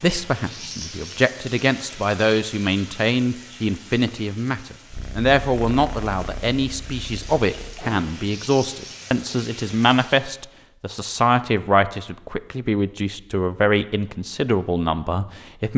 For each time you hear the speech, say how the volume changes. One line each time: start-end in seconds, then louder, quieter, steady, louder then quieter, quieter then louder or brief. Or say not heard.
0.0-15.7 steady.